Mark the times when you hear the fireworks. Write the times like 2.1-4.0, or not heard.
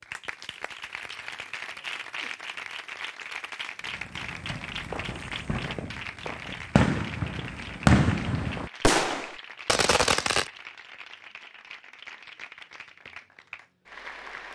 3.8-10.5.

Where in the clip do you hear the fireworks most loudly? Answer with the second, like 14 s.
8 s.